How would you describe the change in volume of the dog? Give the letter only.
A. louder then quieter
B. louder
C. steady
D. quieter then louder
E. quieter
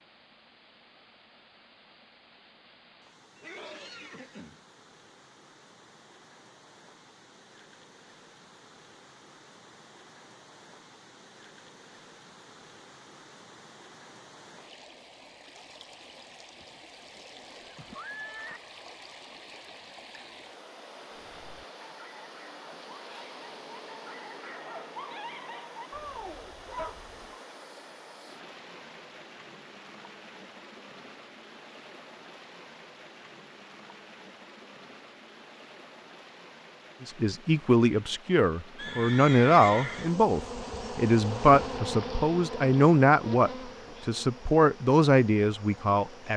B.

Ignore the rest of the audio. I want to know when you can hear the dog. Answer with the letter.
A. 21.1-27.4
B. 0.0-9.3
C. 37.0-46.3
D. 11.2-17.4
A.